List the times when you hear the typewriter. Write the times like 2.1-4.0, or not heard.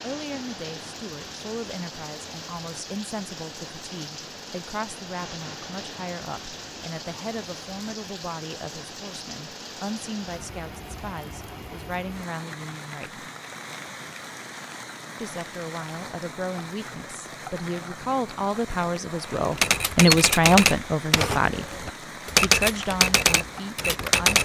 19.6-24.4.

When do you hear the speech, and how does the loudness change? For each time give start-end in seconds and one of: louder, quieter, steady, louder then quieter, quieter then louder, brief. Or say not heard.
0.0-13.2 steady
15.2-24.4 louder then quieter.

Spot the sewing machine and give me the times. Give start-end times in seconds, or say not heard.
not heard.